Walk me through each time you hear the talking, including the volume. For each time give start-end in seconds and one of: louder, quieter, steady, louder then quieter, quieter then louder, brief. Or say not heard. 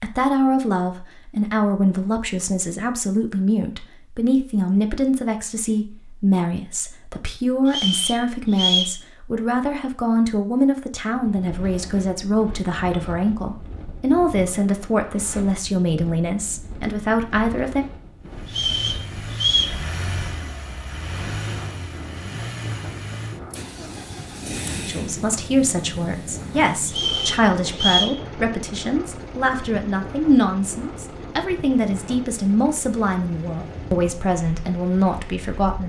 0.0-17.9 steady
24.9-35.8 steady.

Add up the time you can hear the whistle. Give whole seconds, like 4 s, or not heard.
4 s.